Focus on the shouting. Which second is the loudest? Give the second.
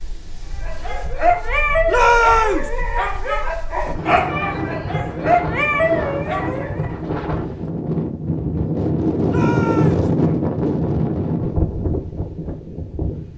2 s.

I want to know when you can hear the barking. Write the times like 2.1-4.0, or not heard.
0.6-6.9.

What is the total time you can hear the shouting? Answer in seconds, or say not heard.
2 s.